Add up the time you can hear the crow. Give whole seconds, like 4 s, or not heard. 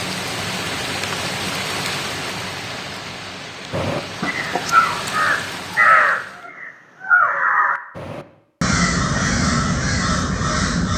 7 s.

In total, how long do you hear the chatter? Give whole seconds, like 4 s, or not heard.
not heard.